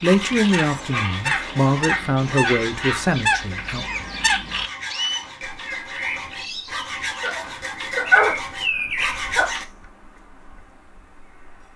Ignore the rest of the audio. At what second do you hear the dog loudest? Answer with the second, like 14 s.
8 s.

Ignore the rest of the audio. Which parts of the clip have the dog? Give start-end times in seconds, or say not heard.
0.5-3.1, 7.2-9.5.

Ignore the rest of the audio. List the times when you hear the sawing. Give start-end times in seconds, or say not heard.
0.0-9.7.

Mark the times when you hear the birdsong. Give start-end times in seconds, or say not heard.
0.0-11.7.